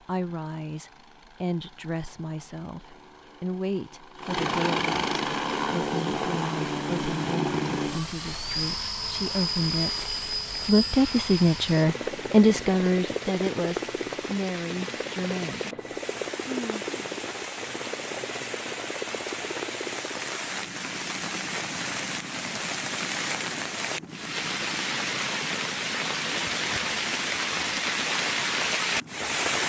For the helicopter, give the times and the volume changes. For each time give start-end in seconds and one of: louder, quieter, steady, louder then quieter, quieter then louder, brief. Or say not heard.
0.0-29.6 quieter.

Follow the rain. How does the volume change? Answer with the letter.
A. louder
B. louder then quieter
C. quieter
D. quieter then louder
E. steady
A.